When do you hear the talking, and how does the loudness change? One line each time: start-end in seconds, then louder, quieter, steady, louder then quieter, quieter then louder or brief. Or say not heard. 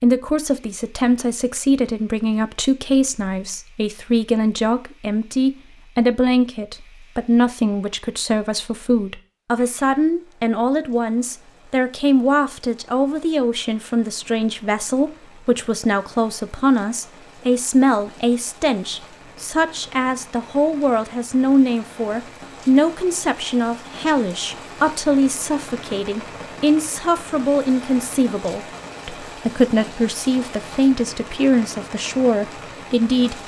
0.0-33.4 steady.